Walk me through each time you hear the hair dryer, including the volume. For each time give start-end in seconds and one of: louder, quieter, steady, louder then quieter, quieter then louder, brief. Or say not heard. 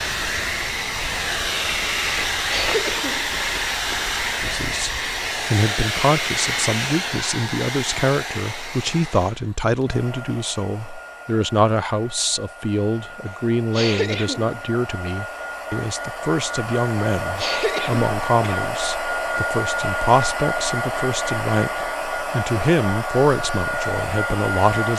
0.0-24.9 quieter then louder.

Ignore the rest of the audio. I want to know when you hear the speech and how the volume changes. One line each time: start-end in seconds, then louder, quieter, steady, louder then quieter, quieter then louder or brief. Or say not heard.
4.4-24.9 steady.